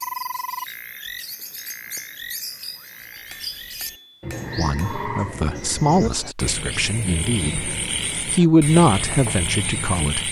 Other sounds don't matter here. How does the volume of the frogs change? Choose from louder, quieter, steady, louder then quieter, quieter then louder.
quieter then louder.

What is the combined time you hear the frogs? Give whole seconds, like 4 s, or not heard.
10 s.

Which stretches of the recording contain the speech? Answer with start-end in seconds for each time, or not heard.
4.5-10.2.